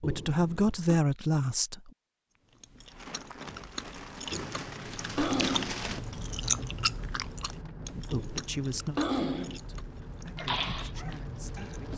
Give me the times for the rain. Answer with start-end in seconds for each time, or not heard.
2.8-11.9.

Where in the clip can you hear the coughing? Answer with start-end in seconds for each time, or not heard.
0.0-1.0, 4.3-5.8, 8.1-9.6.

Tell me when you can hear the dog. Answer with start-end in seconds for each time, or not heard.
10.3-11.9.